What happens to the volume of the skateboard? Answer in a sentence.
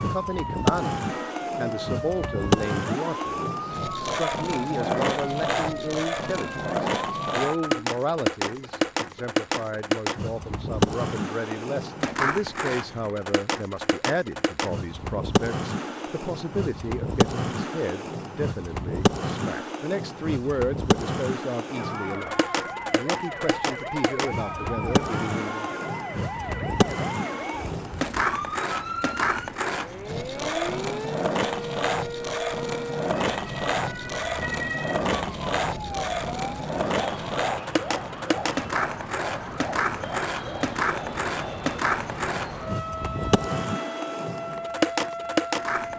The volume of the skateboard stays about the same.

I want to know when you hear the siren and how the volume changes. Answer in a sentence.
The siren can be heard from 0.1 to 7.8 s, at a steady volume; and from 21.7 to 45.9 s, at a steady volume.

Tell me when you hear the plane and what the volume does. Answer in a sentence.
The plane can't be heard in this clip.